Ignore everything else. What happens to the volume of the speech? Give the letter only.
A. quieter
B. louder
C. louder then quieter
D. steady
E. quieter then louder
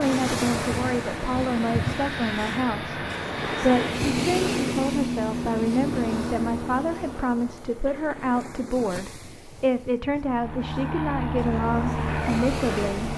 D.